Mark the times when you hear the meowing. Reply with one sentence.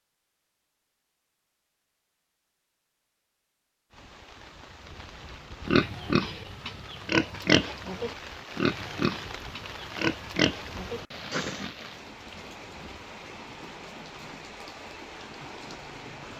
The meowing can't be heard in this clip.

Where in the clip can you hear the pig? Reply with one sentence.
You can hear the pig from 5.7 to 11.7 s.